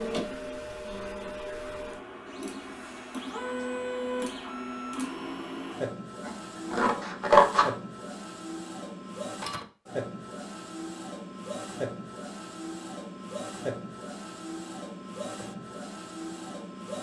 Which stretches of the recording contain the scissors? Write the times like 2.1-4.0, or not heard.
6.2-7.8.